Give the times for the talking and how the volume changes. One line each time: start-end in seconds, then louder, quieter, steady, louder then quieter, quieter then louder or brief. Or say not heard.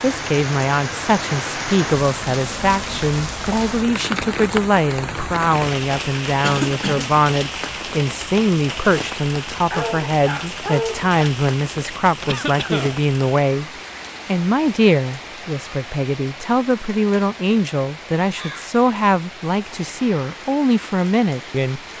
0.0-21.8 steady.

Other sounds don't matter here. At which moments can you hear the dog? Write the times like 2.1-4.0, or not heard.
9.7-11.2.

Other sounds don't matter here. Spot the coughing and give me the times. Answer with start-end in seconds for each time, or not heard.
6.4-7.1, 12.2-13.0.